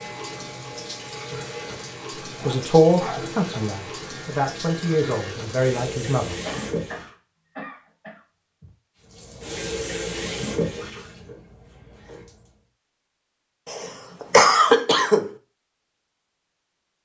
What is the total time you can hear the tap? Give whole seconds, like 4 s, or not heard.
11 s.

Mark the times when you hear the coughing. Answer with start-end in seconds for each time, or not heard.
2.4-3.6, 6.4-8.7, 13.7-15.3.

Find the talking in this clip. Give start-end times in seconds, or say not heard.
2.5-6.3.